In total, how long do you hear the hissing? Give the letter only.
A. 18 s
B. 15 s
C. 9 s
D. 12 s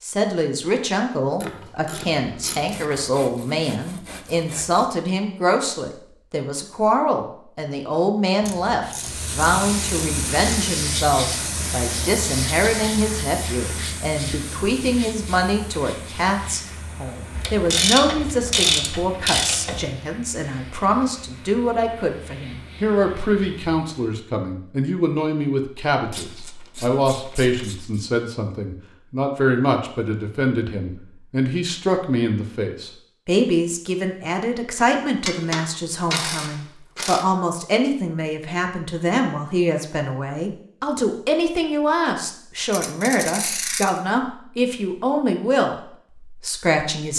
B.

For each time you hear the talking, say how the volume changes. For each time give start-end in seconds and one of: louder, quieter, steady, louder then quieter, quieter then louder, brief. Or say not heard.
0.0-47.1 steady.